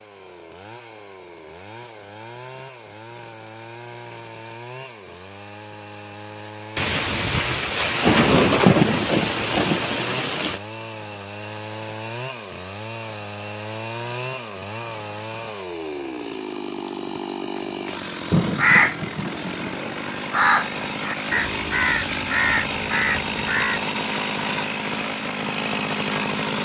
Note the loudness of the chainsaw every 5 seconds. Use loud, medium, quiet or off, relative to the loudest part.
quiet, quiet, medium, medium, loud, loud.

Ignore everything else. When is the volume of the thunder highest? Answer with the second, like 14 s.
9 s.